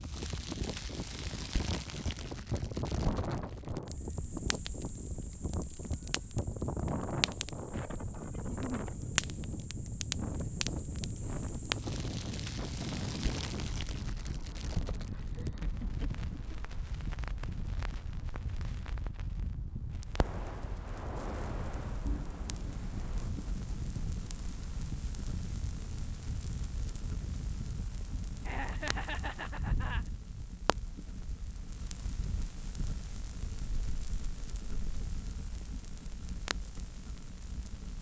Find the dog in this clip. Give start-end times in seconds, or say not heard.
not heard.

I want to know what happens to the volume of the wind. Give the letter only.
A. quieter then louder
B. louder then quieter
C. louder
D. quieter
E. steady
D.